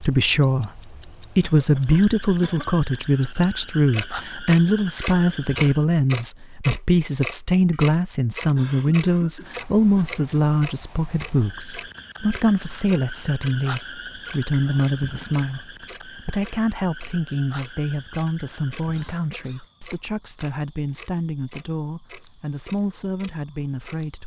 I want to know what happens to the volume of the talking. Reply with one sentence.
The loudness of the talking goes down.